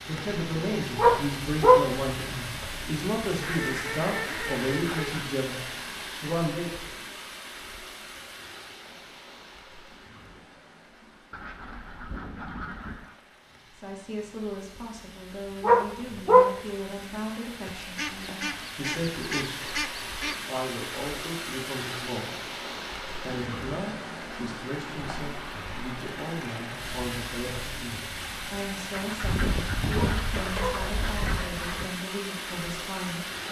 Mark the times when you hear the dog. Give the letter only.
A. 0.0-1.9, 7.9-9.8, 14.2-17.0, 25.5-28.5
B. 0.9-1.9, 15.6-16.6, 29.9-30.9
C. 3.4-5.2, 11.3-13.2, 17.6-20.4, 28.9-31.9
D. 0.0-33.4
B.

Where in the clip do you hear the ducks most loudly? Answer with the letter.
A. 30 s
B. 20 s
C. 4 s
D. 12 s
A.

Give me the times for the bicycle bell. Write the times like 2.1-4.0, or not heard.
not heard.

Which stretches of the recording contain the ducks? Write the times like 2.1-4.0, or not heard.
3.4-5.2, 11.3-13.2, 17.6-20.4, 28.9-31.9.